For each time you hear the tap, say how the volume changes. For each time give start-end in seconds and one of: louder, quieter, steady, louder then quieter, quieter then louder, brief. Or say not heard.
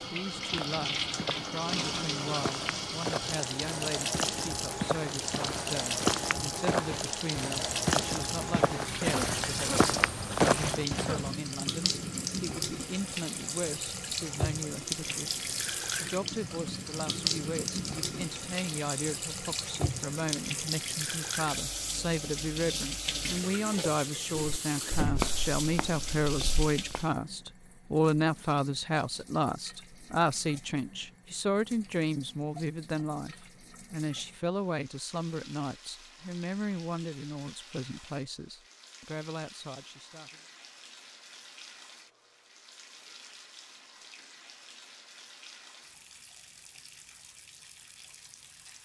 0.0-48.8 quieter.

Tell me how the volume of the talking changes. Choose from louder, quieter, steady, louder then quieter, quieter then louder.
louder then quieter.